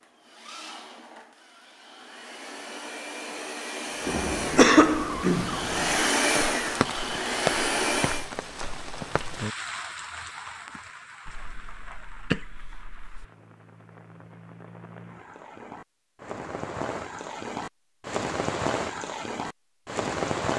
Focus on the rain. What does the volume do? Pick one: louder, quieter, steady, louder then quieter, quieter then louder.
quieter then louder.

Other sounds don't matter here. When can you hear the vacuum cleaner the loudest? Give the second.
6 s.